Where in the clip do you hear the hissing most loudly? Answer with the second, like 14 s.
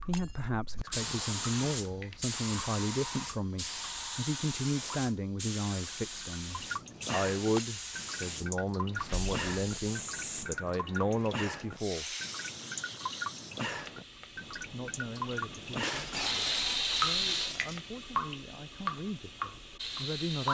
17 s.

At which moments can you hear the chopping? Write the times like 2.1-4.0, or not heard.
not heard.